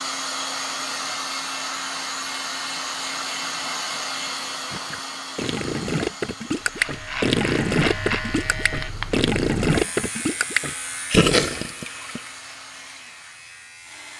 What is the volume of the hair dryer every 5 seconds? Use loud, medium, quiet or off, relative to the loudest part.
loud, medium, quiet.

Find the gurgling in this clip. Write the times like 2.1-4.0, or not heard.
4.7-12.2.